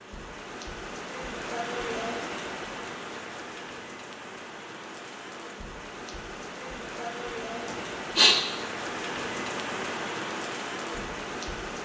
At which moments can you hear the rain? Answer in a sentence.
The rain can be heard from 0.0 to 11.7 s.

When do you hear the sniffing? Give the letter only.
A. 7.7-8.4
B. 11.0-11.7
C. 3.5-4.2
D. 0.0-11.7
A.